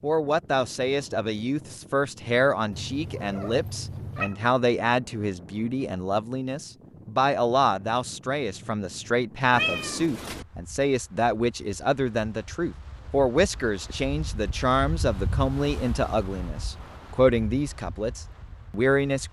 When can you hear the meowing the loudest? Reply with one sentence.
The volume of the meowing peaks at 10 seconds.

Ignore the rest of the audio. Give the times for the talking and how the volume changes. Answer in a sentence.
You can hear the talking from 0.0 to 19.2 s, at a steady volume.